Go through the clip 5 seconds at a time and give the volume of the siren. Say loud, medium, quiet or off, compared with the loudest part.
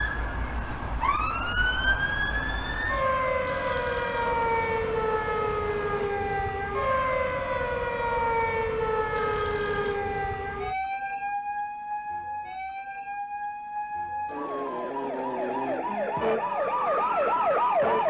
loud, loud, medium, loud.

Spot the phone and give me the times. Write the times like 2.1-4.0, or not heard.
3.5-4.4, 9.1-10.0, 14.2-15.8.